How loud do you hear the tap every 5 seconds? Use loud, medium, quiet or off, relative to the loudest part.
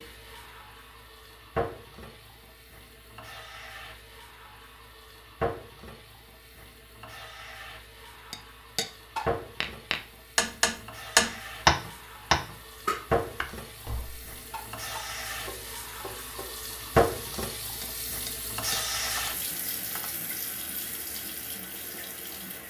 medium, medium, medium, loud, medium.